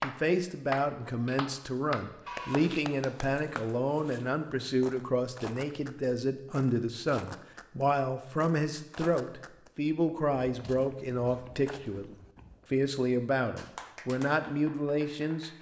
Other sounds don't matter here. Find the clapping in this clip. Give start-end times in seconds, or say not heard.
0.0-3.6, 13.6-15.5.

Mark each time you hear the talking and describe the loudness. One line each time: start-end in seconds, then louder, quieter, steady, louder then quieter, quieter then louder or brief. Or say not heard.
0.0-15.5 steady.